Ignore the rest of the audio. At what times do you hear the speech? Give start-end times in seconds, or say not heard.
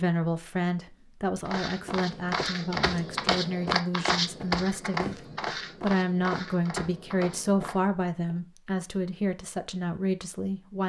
0.0-10.8.